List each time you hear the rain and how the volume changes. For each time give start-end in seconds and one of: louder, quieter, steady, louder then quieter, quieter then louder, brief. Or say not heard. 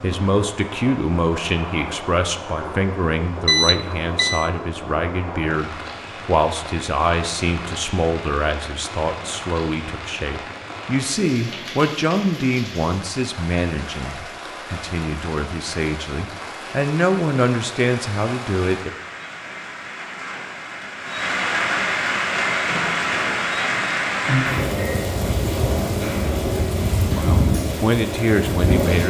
0.0-29.0 louder.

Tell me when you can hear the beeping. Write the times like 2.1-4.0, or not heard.
3.5-4.5.